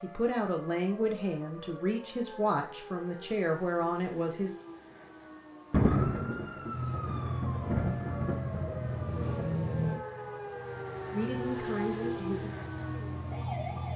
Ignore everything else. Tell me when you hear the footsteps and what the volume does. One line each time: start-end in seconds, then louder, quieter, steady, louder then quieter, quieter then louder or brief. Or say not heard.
not heard.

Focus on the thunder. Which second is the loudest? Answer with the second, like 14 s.
6 s.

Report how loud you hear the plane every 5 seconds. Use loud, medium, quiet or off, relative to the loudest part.
off, loud, medium.